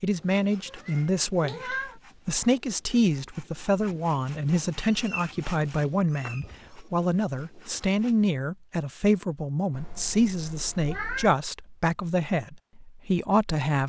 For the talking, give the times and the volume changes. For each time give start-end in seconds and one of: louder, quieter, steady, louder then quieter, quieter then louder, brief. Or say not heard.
0.0-13.8 steady.